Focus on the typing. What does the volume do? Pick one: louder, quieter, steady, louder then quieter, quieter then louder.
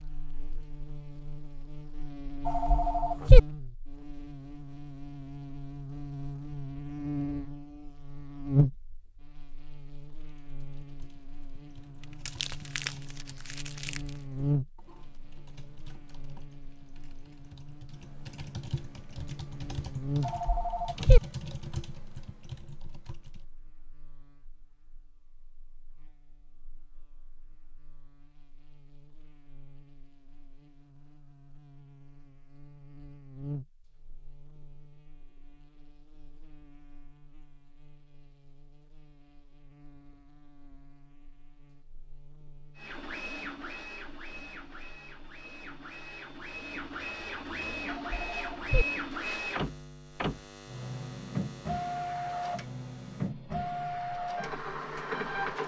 louder.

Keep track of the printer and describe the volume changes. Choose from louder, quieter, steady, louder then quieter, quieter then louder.
louder.